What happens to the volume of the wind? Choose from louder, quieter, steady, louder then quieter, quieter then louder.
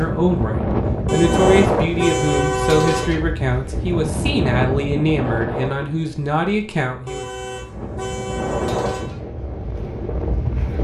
quieter then louder.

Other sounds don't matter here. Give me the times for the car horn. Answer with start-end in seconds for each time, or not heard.
1.1-3.1, 7.0-9.2.